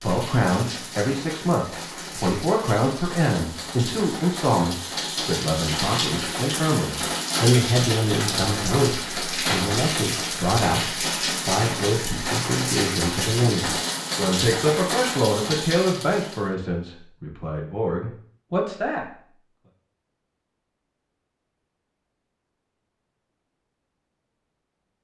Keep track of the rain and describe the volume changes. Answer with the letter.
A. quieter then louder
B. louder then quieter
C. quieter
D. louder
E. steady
D.